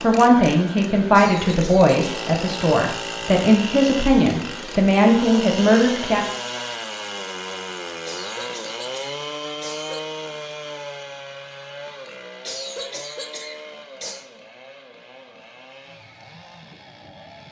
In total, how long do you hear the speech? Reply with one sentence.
The speech can be heard for 6 seconds in total.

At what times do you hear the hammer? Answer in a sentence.
You can't hear the hammer here.